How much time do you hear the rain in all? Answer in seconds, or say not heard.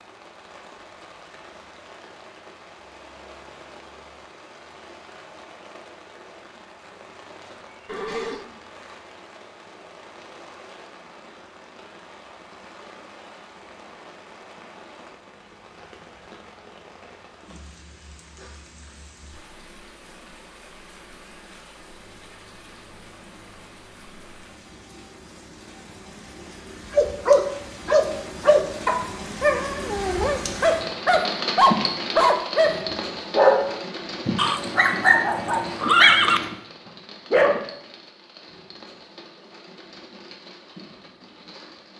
42 s.